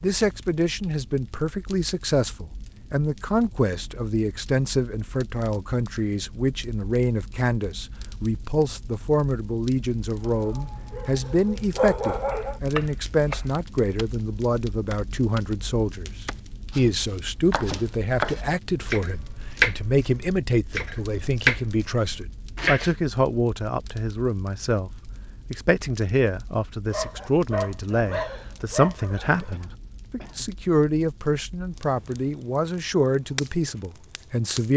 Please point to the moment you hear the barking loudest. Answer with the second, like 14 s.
12 s.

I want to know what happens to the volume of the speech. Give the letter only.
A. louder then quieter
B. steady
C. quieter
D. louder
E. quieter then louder
B.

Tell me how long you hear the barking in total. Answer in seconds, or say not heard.
5 s.